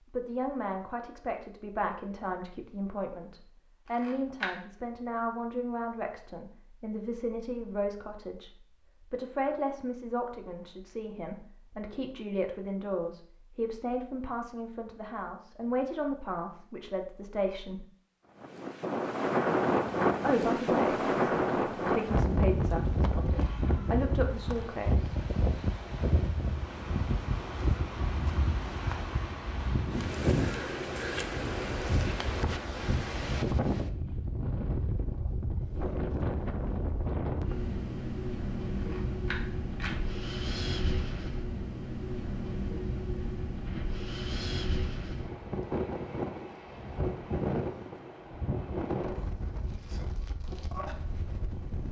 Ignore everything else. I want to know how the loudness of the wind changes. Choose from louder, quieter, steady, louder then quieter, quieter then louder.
quieter.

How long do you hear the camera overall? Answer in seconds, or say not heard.
3 s.